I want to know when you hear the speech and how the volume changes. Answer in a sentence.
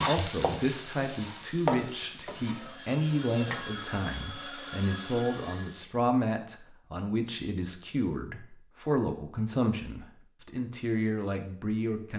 The speech can be heard from 0.1 to 12.1 s, at a steady volume.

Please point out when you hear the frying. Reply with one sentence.
The frying can be heard from 0.0 to 6.0 s.